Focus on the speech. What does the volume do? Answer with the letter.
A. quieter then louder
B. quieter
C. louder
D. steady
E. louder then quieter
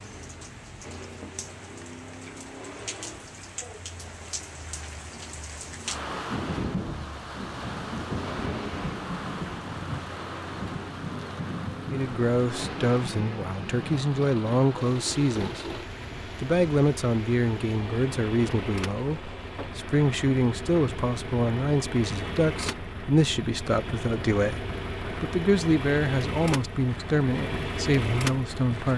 D.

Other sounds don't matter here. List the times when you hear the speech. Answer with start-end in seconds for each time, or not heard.
11.9-15.8, 16.4-28.9.